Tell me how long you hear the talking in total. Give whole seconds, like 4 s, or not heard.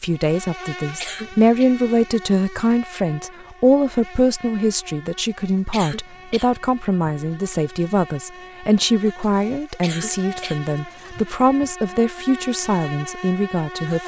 14 s.